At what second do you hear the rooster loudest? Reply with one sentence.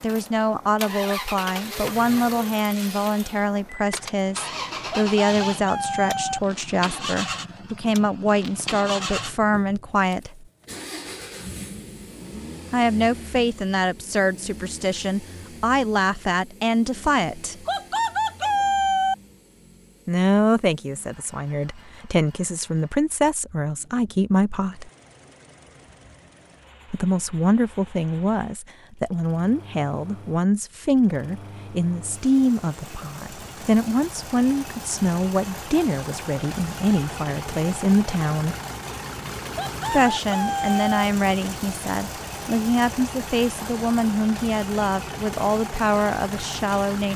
The loudest moment of the rooster is at 19 seconds.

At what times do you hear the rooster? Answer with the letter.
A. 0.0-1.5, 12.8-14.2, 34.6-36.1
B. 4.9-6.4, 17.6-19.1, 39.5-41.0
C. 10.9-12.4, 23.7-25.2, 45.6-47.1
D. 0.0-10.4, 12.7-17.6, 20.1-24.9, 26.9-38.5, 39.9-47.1
B.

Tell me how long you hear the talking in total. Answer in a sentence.
You can hear the talking for 39 seconds altogether.